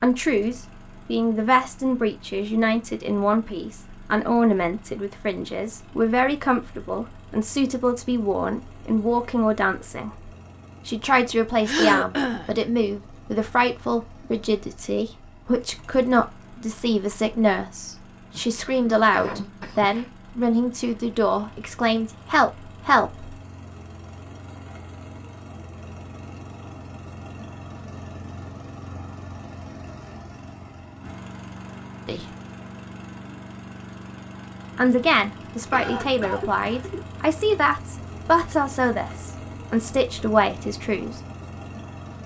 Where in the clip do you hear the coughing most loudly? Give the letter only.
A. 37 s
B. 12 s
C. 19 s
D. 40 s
B.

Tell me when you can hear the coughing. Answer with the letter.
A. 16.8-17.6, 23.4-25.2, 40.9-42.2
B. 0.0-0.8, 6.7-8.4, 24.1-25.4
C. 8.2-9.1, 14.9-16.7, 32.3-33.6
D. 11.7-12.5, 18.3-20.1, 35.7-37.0
D.